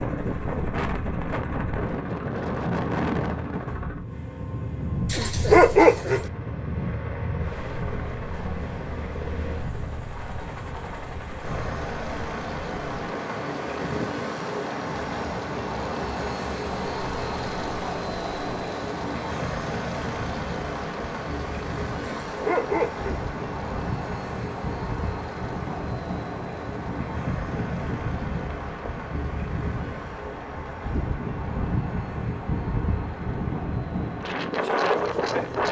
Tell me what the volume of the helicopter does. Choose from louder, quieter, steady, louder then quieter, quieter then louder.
louder then quieter.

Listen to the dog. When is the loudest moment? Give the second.
6 s.